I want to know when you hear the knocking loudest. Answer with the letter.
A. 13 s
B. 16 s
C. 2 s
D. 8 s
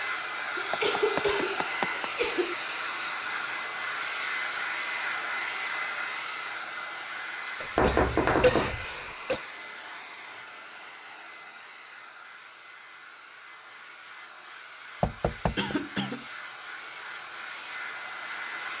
D.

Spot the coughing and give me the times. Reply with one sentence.
You can hear the coughing from 0.6 to 2.5 s, from 7.6 to 9.4 s and from 15.6 to 16.2 s.